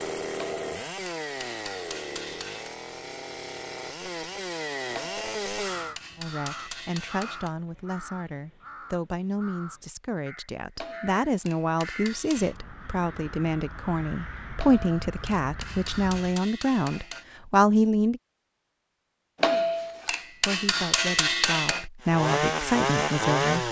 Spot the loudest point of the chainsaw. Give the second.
23 s.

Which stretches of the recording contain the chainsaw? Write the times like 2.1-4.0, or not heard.
0.0-6.0, 22.0-23.6.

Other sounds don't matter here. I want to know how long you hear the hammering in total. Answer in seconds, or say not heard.
12 s.